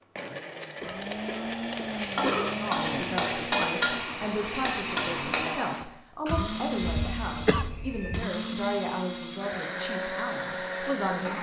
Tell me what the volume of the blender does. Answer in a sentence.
The volume of the blender stays about the same.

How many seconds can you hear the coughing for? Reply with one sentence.
The coughing can be heard for 4 seconds in total.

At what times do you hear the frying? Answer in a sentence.
The frying can be heard from 1.9 to 5.6 s.